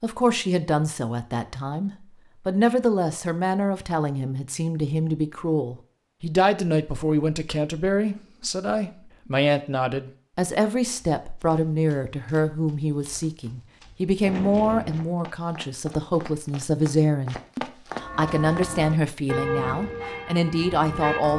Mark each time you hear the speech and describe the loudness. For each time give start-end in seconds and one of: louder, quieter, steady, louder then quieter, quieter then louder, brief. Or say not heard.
0.0-21.3 steady.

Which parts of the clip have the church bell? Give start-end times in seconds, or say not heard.
17.9-21.3.